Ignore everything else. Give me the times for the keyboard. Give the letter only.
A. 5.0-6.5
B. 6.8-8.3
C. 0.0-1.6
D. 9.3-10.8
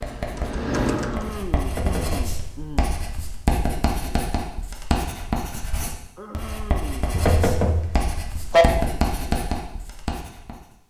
C.